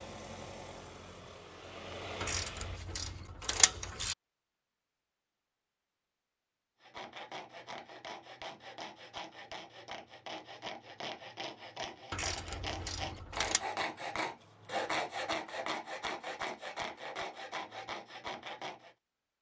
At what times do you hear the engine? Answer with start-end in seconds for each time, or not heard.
0.0-2.8.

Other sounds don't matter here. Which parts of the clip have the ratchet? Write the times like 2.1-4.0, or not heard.
2.2-4.2, 12.1-13.6.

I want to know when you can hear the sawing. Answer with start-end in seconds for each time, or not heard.
6.8-18.9.